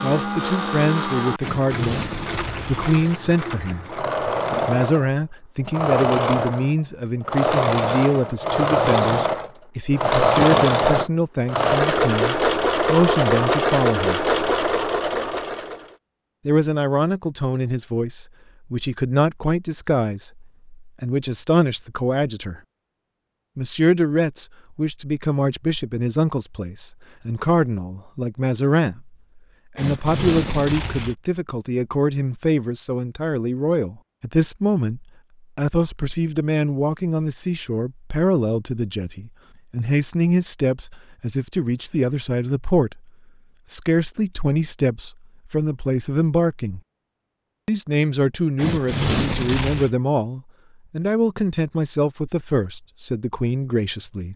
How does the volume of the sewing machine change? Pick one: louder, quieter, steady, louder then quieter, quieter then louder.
louder.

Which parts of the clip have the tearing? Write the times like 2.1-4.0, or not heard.
1.4-3.1, 29.8-31.1, 48.5-49.9.